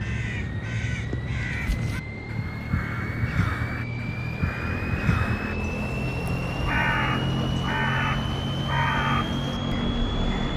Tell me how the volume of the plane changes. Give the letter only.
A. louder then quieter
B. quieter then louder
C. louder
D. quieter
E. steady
C.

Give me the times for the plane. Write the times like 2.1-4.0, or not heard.
0.0-10.5.